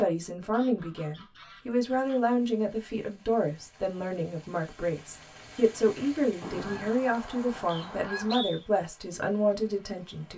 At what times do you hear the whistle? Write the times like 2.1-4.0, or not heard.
7.7-8.7.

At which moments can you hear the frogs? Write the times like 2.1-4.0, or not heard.
not heard.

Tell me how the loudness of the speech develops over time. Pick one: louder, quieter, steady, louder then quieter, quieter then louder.
steady.